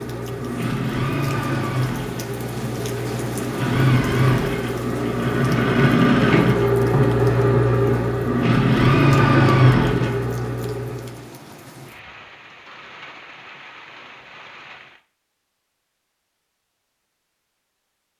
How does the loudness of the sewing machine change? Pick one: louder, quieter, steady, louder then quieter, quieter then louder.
louder.